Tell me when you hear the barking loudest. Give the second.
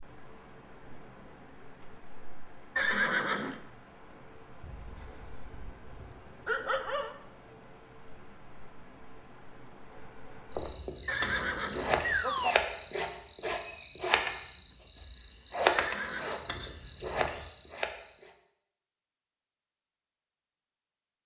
7 s.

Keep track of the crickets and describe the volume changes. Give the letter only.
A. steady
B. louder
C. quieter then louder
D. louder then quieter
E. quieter
B.